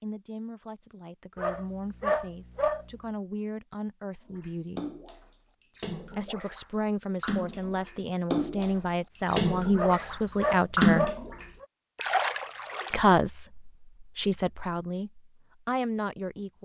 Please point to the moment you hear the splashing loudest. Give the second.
11 s.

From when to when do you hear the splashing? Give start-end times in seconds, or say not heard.
4.2-13.1.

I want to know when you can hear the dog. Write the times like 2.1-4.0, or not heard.
1.4-2.9, 9.8-11.7.